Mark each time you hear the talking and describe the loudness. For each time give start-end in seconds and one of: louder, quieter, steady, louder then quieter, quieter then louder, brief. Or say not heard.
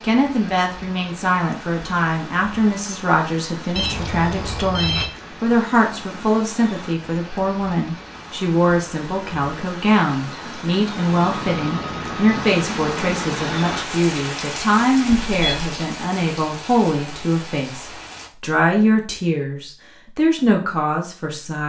0.0-21.6 steady.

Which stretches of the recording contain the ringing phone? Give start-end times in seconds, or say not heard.
3.8-5.1, 11.1-12.7, 15.1-15.8.